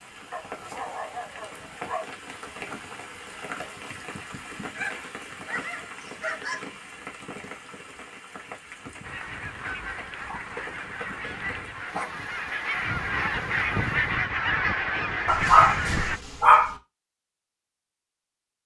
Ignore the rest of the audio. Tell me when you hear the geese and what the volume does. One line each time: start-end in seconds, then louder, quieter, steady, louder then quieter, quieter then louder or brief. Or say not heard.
9.0-16.2 louder.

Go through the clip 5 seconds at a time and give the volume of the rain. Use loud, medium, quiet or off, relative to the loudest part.
loud, loud, medium, off.